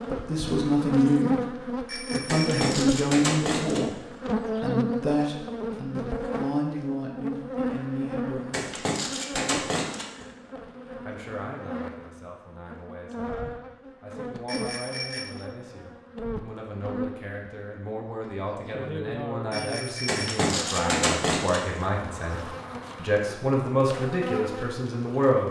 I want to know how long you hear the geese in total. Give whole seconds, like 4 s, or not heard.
5 s.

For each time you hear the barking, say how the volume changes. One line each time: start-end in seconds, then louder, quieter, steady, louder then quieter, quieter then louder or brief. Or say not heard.
not heard.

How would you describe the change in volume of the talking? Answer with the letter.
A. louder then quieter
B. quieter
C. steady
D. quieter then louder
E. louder
D.